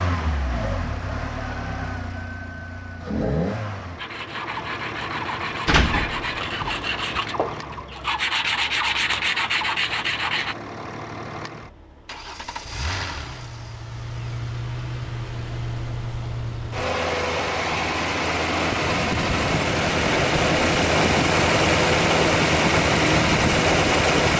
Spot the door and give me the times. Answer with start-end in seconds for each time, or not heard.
5.7-7.2.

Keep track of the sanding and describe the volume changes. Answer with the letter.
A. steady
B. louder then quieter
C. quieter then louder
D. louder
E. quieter
D.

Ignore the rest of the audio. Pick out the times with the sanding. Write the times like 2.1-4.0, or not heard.
4.0-10.6.